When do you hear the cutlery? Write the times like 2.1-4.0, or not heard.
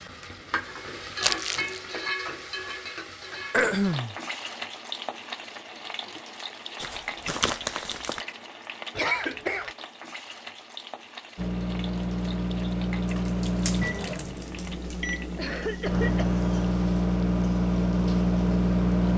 not heard.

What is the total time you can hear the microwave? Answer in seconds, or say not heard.
8 s.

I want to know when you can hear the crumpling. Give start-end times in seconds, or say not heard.
1.2-1.8, 6.8-8.2, 13.1-14.9.